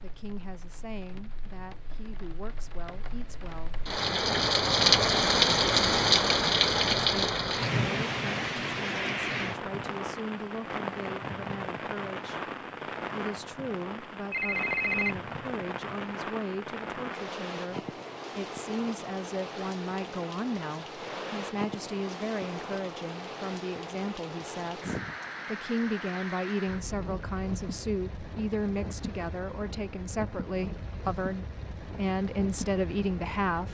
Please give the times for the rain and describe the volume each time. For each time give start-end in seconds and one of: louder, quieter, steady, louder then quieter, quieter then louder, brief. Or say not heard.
0.0-33.6 quieter.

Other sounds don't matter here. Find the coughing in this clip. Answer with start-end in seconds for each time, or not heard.
not heard.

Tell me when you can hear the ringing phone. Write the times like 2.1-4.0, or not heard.
14.3-15.2.